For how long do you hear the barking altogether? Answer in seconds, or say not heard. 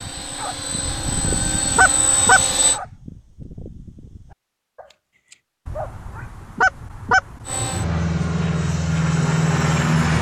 6 s.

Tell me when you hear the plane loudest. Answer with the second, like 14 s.
10 s.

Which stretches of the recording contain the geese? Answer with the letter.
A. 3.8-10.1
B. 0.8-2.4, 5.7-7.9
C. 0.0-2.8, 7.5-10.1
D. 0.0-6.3
B.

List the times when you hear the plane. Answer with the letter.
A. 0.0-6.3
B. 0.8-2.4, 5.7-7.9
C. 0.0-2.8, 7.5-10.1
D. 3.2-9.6
C.